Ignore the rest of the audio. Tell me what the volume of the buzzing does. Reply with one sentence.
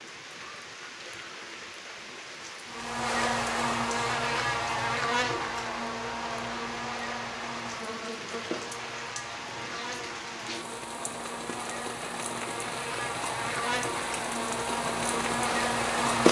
The loudness of the buzzing goes down, then up.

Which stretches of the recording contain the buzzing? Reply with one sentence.
The buzzing can be heard from 2.6 to 16.2 s.